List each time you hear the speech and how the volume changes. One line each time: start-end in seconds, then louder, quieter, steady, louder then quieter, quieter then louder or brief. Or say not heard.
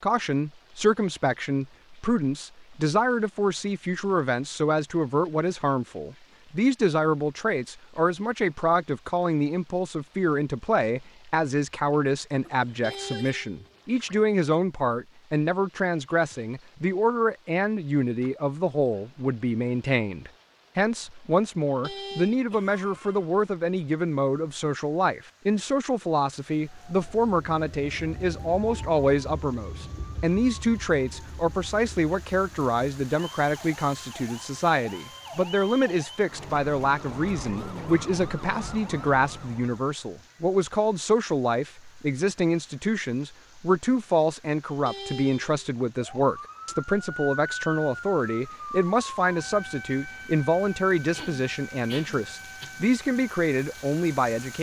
0.0-54.5 steady.